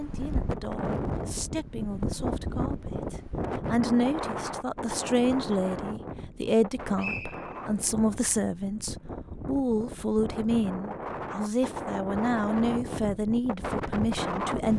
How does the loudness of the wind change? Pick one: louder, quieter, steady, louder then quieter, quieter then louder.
quieter then louder.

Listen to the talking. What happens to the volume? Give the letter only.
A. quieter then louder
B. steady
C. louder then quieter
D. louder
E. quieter
D.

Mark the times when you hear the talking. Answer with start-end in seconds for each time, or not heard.
0.0-14.7.